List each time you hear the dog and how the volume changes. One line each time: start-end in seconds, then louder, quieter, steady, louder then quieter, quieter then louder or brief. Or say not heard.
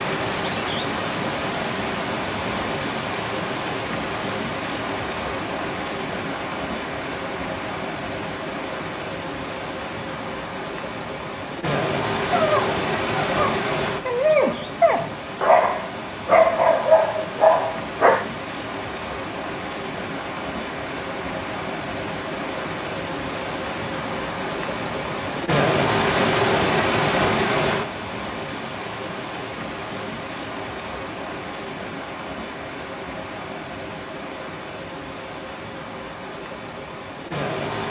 12.3-18.3 louder.